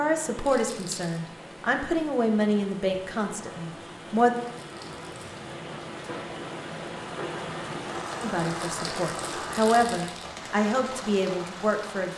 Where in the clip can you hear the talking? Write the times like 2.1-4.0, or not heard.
0.0-4.3, 8.2-12.1.